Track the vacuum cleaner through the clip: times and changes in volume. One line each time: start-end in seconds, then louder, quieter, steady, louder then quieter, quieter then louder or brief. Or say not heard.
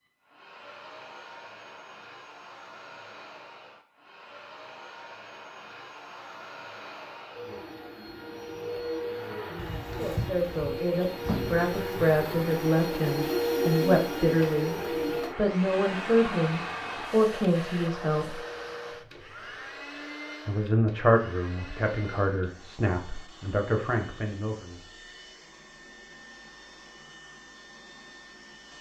0.0-28.7 louder then quieter.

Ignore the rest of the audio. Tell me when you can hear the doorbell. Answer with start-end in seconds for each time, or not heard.
9.6-10.8.